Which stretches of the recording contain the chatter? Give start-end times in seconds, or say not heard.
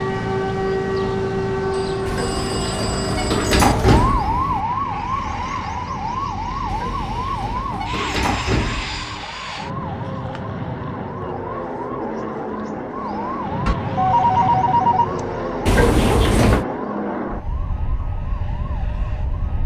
not heard.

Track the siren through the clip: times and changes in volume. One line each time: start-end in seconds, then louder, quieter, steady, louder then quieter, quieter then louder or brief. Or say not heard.
0.0-19.6 quieter.